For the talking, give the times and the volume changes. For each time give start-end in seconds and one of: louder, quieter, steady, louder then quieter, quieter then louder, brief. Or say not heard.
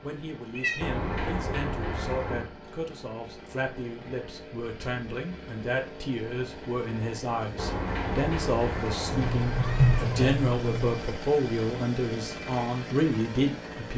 0.0-13.9 louder.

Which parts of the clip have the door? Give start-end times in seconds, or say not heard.
0.8-2.5, 7.5-10.3.